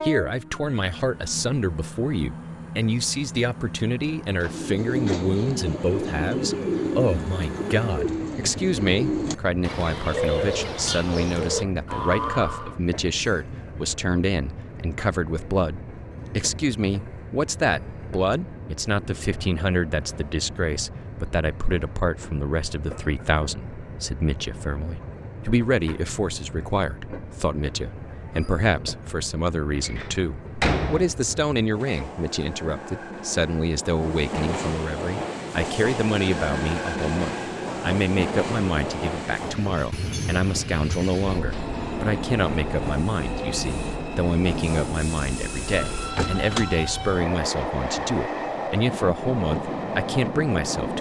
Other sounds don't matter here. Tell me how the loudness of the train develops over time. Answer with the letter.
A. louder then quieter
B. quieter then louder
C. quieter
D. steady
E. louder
E.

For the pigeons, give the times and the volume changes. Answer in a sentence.
You can hear the pigeons from 4.5 to 12.8 s, at a steady volume.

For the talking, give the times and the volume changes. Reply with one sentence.
You can hear the talking from 0.0 to 50.9 s, at a steady volume.